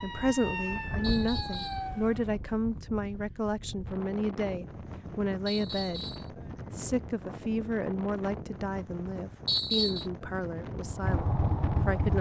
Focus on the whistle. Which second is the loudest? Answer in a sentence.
The volume of the whistle peaks at 10 seconds.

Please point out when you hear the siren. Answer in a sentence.
The siren can be heard from 0.0 to 2.3 s.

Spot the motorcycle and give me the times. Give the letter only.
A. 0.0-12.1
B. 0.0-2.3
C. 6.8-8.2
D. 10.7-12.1
D.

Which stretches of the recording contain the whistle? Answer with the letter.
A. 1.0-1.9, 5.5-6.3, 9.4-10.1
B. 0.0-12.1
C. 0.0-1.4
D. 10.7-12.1
A.